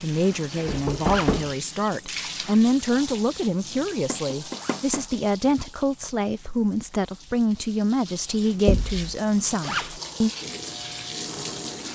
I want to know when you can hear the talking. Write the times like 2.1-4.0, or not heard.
0.0-10.3.